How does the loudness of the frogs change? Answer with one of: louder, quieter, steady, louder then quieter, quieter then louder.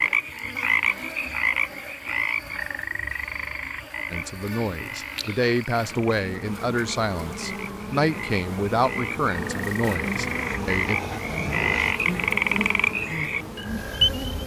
quieter then louder.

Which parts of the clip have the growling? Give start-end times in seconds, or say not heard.
10.2-11.9.